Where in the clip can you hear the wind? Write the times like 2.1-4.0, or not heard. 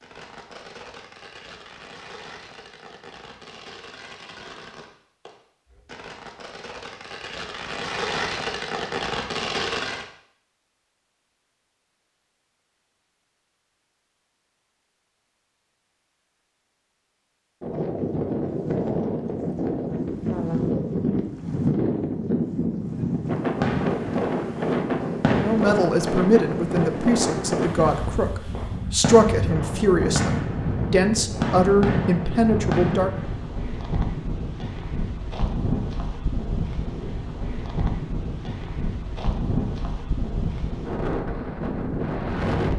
17.6-42.7.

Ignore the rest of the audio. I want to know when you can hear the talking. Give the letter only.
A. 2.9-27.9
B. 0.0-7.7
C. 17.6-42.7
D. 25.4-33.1
D.